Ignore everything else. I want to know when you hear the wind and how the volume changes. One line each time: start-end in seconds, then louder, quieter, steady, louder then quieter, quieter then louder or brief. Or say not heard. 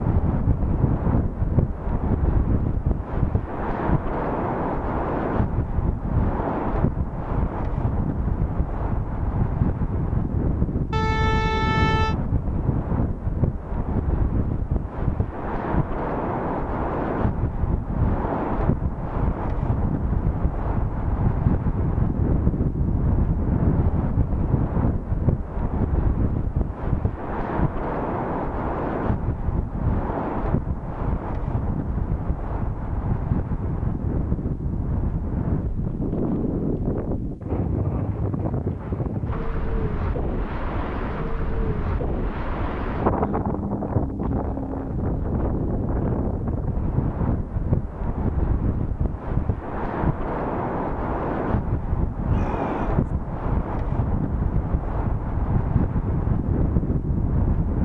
0.0-57.8 steady.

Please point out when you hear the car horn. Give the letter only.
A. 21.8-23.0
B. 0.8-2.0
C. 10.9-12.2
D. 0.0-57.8
C.